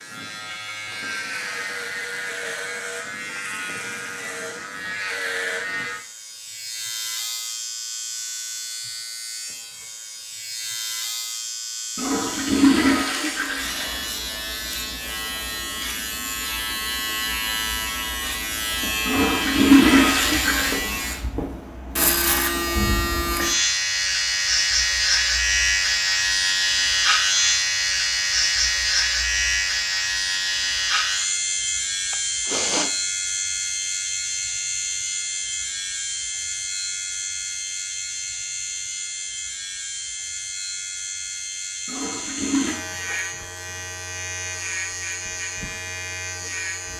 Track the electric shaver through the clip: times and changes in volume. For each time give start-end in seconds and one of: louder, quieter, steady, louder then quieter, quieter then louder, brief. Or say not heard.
0.0-46.9 louder then quieter.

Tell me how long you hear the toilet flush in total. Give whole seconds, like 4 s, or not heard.
5 s.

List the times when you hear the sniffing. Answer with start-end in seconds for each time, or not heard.
32.1-32.9.